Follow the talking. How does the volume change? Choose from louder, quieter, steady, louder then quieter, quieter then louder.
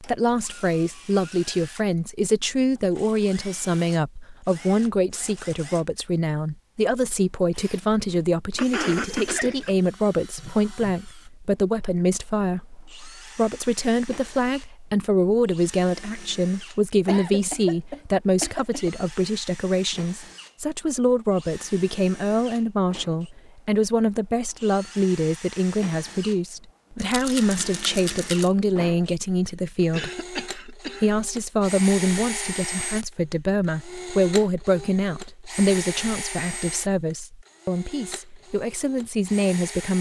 steady.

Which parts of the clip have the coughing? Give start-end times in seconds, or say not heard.
8.6-9.8, 17.1-18.9, 29.9-31.1.